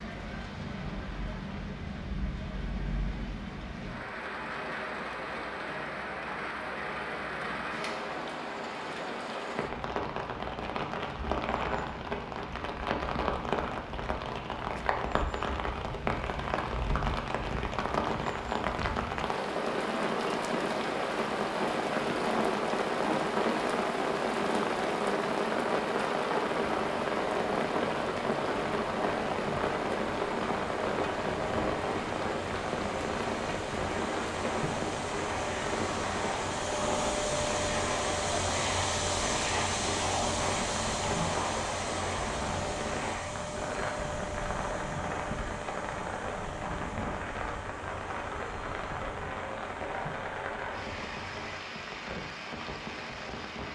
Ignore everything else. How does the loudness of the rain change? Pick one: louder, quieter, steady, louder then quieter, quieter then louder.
louder then quieter.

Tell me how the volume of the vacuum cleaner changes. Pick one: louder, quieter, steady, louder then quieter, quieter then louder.
louder then quieter.